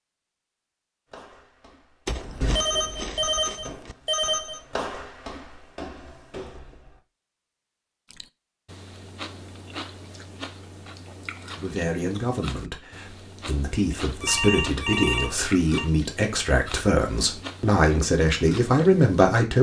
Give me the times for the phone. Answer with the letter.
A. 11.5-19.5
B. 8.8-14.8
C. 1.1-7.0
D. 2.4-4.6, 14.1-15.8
D.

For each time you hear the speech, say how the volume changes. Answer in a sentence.
You can hear the speech from 11.5 to 19.5 s, getting louder.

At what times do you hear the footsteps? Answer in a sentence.
The footsteps can be heard from 1.1 to 7.0 s.